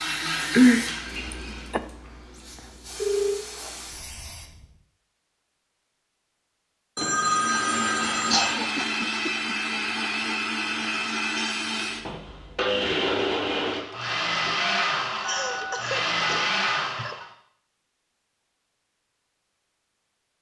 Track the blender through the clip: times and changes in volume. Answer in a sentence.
The blender can be heard briefly from 0.0 to 1.8 s; and from 7.1 to 17.3 s, at a steady volume.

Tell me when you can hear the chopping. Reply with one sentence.
The chopping can't be heard in this clip.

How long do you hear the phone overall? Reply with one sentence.
You can hear the phone for 5 seconds altogether.